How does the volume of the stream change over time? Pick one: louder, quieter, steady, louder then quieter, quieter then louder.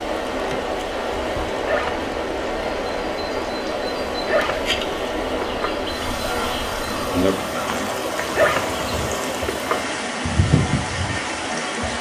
steady.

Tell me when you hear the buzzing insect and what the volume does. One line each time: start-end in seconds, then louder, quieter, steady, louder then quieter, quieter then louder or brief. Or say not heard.
0.0-11.9 louder.